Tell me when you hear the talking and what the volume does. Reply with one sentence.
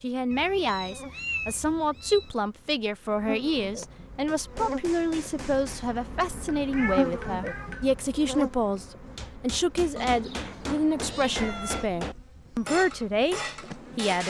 The talking can be heard from 0.0 to 14.2 s, at a steady volume.